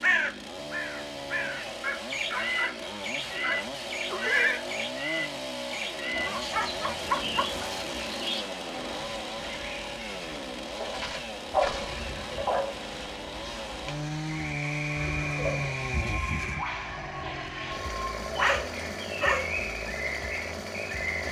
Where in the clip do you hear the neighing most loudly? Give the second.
4 s.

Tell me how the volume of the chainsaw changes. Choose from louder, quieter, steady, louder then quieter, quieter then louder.
steady.